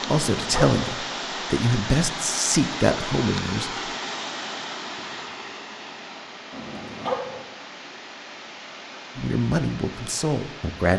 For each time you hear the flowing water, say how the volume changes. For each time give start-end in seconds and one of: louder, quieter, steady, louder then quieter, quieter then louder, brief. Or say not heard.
0.0-10.9 quieter.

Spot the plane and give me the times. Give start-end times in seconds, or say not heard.
not heard.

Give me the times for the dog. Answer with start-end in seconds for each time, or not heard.
0.0-0.8, 6.5-7.5.